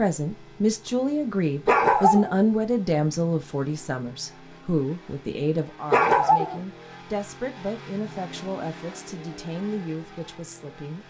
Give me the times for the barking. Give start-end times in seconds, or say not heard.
1.6-2.4, 5.9-6.6.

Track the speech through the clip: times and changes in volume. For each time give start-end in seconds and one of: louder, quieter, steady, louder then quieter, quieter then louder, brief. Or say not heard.
0.0-11.0 quieter.